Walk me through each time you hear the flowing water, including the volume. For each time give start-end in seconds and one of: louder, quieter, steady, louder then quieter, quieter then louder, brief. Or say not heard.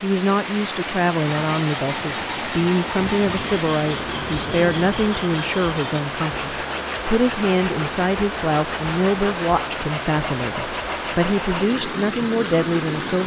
0.0-13.2 steady.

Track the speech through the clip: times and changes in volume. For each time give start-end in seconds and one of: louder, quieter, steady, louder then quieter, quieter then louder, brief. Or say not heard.
0.0-13.2 steady.